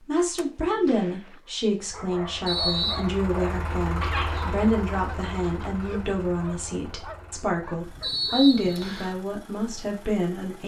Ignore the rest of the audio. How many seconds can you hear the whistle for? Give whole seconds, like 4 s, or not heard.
2 s.